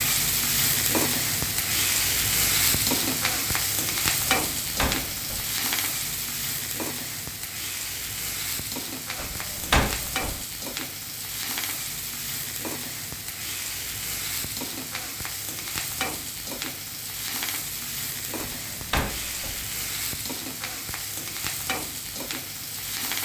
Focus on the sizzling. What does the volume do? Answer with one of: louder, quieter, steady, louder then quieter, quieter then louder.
quieter.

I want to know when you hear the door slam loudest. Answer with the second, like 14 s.
10 s.